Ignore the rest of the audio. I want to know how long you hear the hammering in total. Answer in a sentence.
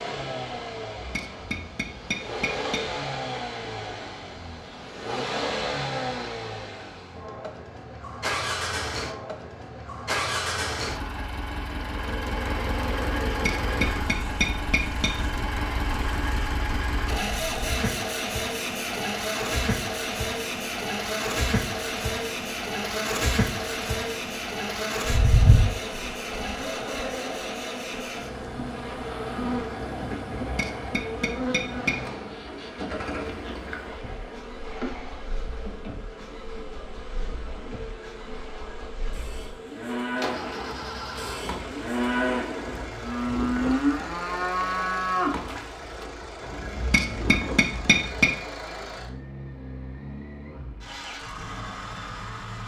You can hear the hammering for 7 seconds altogether.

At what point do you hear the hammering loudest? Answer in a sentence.
The volume of the hammering peaks at 48 seconds.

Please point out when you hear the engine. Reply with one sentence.
You can hear the engine from 0.0 to 52.6 s.